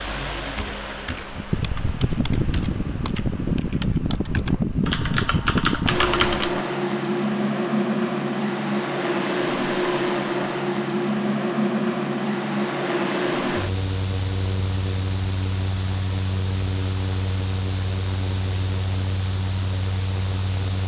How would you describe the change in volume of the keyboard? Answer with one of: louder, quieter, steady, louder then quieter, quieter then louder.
louder.